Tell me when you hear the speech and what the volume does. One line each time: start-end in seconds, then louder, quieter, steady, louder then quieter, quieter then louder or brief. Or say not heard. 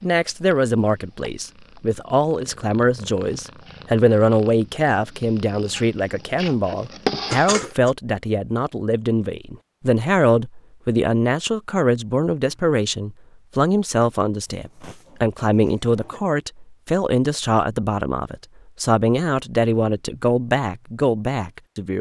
0.0-21.9 steady.